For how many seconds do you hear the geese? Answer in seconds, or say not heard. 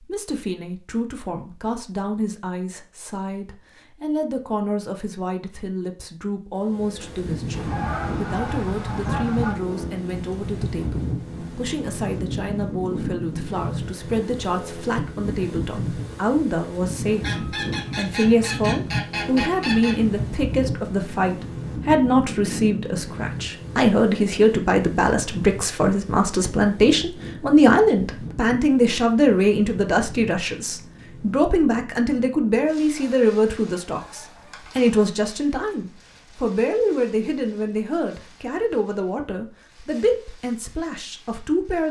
7 s.